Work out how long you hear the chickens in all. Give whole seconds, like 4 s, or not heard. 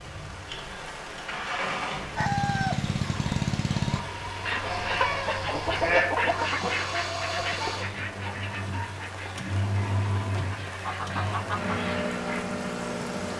10 s.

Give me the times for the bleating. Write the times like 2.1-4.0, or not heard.
4.7-6.0.